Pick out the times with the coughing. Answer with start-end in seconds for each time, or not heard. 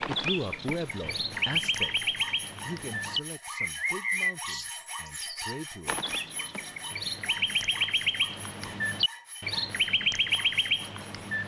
not heard.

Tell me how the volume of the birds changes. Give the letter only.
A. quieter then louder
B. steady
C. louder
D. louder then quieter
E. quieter
A.